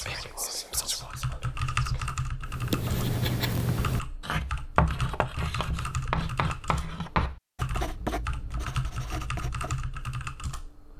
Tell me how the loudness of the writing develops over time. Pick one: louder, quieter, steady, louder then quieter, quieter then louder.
quieter.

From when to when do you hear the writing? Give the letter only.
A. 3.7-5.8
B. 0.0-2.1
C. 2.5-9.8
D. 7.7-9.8
C.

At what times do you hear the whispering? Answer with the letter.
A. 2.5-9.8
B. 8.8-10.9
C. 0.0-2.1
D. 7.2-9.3
C.